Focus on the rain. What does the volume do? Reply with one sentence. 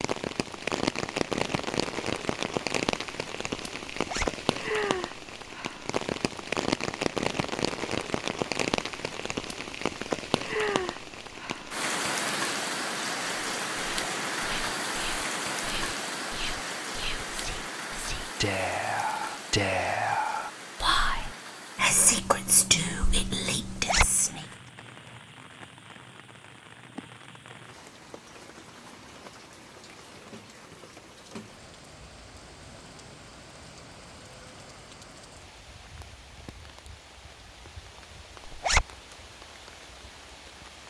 The loudness of the rain goes down.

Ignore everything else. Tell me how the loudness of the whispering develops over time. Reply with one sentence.
The volume of the whispering goes up.